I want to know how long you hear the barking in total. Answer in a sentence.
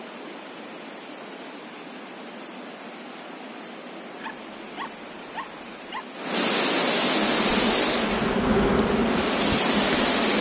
You can hear the barking for 2 seconds altogether.